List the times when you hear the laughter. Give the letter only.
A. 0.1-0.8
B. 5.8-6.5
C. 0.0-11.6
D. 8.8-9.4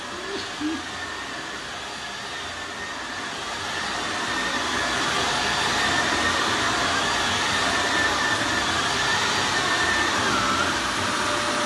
A.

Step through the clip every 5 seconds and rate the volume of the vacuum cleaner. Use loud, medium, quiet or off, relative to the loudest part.
medium, loud, loud.